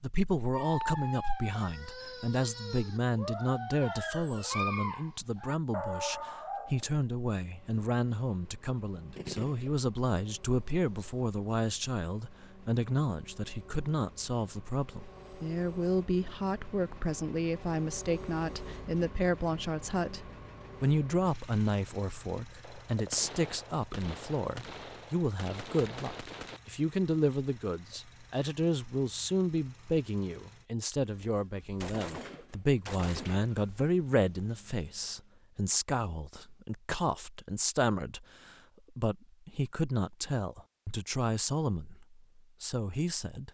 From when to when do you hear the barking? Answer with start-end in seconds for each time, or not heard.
0.5-7.0.